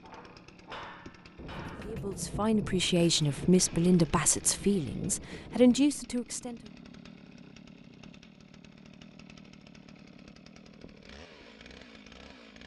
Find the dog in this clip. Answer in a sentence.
The dog can't be heard in this clip.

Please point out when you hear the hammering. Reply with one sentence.
The hammering can be heard from 0.0 to 1.9 s.